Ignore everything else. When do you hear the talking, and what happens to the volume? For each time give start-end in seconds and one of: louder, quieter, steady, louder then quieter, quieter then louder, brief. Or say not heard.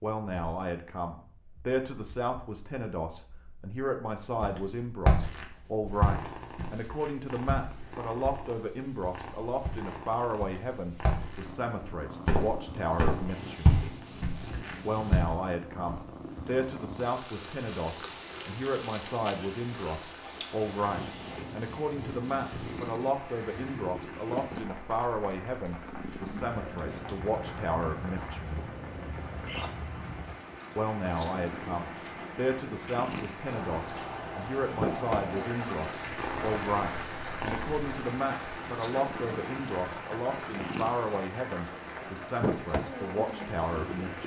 0.0-13.8 steady
14.8-28.6 steady
30.8-44.2 steady.